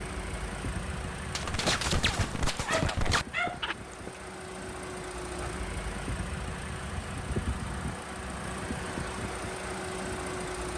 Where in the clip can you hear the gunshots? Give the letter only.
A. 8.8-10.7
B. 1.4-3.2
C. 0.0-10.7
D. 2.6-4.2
B.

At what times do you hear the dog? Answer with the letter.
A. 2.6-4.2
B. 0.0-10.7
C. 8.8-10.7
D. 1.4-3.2
A.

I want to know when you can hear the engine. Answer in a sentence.
You can hear the engine from 0.0 to 10.7 s.